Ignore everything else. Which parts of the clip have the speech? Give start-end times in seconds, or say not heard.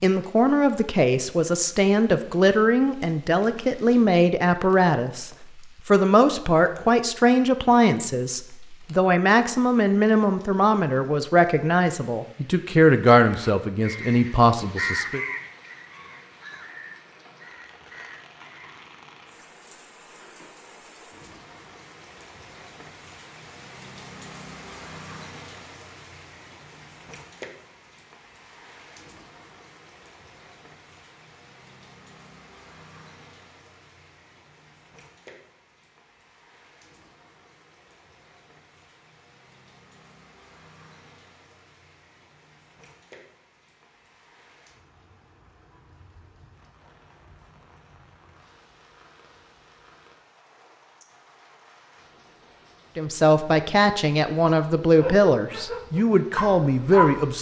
0.0-15.2, 53.0-57.3.